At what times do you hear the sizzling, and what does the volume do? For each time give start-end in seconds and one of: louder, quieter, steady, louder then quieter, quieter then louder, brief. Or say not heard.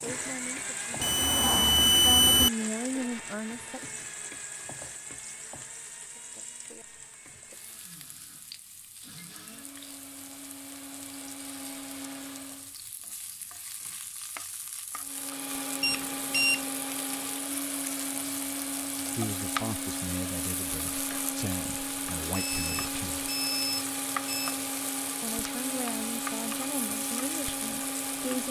0.0-28.4 quieter then louder.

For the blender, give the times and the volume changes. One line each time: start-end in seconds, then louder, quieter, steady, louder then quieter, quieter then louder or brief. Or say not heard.
0.0-12.8 quieter then louder
15.0-28.4 steady.